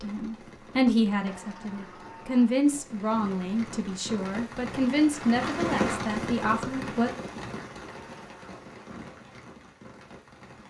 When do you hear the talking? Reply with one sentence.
The talking can be heard from 0.0 to 7.1 s.